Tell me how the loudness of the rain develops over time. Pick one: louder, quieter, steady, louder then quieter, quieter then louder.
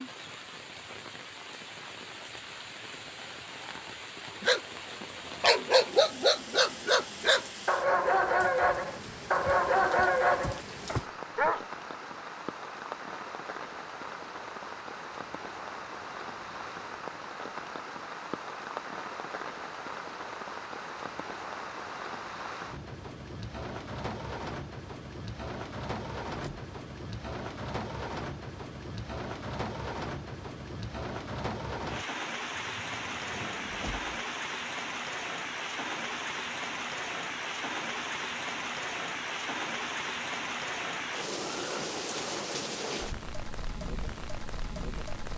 louder.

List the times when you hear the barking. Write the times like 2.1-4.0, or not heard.
4.4-11.6.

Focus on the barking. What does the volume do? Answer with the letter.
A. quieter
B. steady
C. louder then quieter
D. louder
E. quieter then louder
B.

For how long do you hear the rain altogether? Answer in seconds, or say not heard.
45 s.